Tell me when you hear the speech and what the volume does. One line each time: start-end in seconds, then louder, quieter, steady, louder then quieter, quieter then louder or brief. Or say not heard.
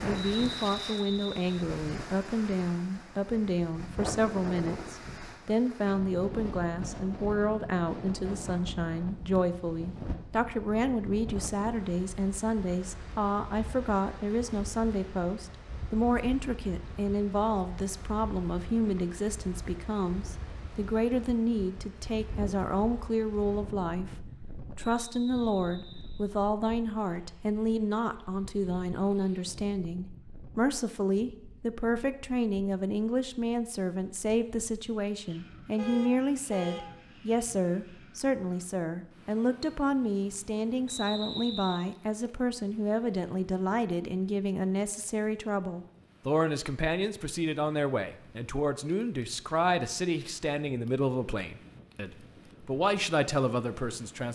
0.0-54.3 steady.